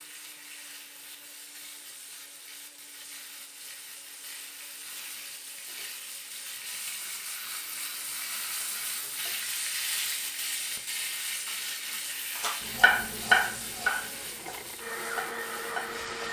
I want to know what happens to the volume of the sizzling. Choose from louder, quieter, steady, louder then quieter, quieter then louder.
louder then quieter.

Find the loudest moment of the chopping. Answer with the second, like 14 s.
13 s.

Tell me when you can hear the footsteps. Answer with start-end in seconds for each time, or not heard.
not heard.